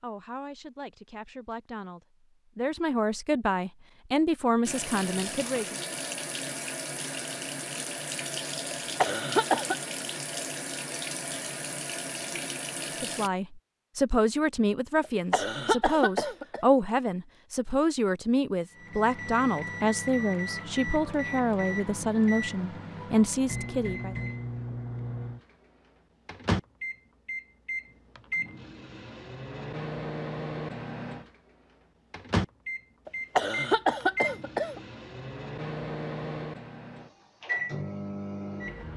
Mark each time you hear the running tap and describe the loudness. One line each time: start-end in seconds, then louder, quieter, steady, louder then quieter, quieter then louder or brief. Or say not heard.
4.7-13.3 steady.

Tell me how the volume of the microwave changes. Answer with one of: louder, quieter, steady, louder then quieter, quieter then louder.
steady.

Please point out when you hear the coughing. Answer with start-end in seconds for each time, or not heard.
8.7-9.8, 15.0-16.6, 33.0-34.8.